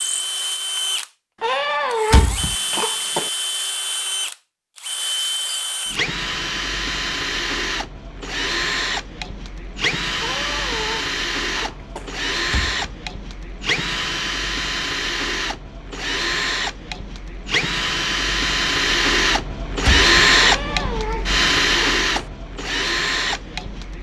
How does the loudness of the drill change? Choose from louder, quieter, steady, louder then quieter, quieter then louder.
louder.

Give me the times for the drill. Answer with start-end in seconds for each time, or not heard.
0.0-23.9.